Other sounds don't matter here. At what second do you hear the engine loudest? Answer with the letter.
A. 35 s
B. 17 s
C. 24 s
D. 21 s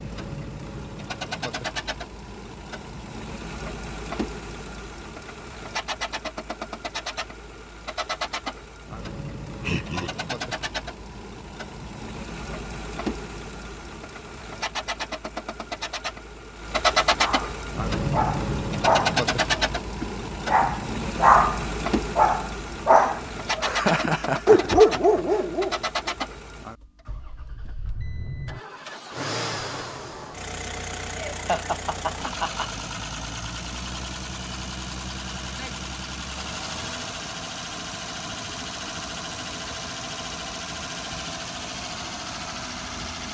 B.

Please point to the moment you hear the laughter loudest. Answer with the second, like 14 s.
24 s.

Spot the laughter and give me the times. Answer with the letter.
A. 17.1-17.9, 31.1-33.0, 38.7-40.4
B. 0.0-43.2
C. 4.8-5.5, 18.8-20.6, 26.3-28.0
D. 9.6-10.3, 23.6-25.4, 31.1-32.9
D.